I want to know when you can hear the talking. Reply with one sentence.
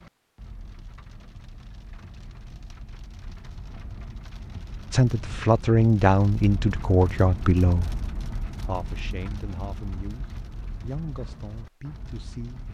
The talking can be heard from 4.9 to 12.6 s.